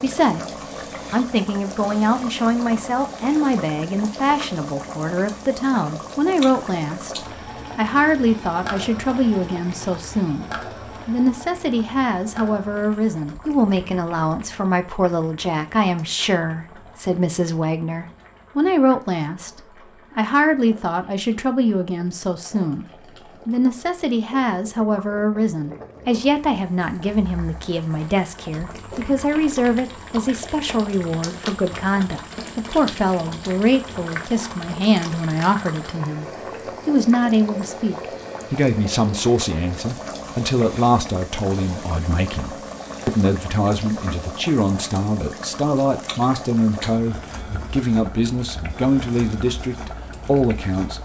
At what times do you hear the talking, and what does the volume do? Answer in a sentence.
The talking can be heard from 0.0 to 51.0 s, at a steady volume.